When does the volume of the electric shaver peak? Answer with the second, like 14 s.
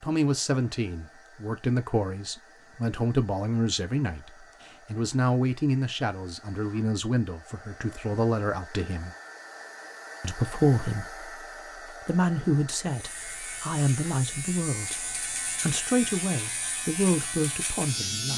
18 s.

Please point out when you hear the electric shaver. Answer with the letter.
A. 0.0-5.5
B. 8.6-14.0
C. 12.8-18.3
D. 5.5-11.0
C.